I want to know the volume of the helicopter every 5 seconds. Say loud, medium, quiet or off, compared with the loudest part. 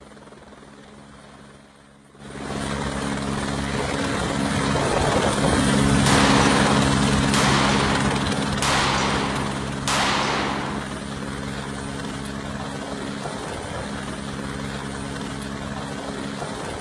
medium, loud, medium, medium.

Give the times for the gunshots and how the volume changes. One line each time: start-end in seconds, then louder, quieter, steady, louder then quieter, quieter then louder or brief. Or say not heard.
6.0-10.9 steady.